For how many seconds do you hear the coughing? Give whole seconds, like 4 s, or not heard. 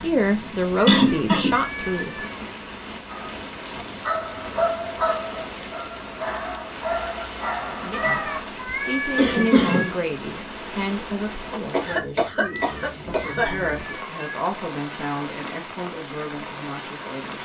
3 s.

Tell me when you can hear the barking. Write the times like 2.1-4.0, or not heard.
3.1-8.4.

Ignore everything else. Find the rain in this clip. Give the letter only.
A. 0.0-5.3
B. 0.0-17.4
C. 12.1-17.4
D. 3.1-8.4
B.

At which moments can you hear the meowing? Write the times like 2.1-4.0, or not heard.
0.9-2.5, 7.9-9.9, 12.4-14.4.